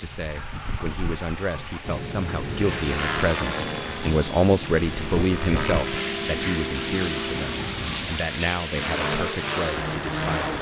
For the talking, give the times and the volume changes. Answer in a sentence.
You can hear the talking from 0.0 to 10.5 s, getting louder then quieter.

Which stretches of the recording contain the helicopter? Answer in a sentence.
You can hear the helicopter from 1.8 to 10.5 s.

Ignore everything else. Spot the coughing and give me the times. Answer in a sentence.
The coughing can't be heard in this clip.